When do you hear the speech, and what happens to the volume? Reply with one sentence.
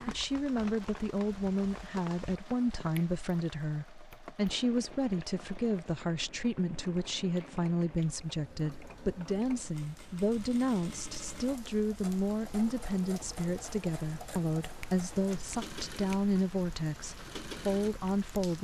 You can hear the speech from 0.1 to 18.5 s, at a steady volume.